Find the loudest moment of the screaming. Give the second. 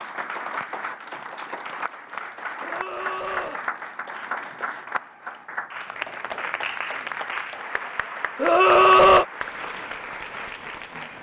9 s.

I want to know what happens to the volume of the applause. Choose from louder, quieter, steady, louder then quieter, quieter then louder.
steady.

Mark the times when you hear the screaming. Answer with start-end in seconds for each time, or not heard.
2.6-3.6, 8.4-9.2.